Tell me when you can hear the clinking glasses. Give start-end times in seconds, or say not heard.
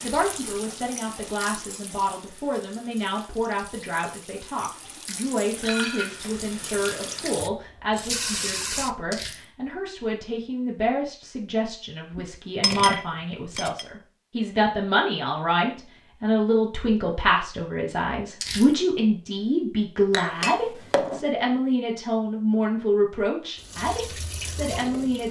5.1-6.3, 12.2-13.8, 20.1-21.2.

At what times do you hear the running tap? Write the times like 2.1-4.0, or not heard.
0.0-8.9, 23.6-25.2.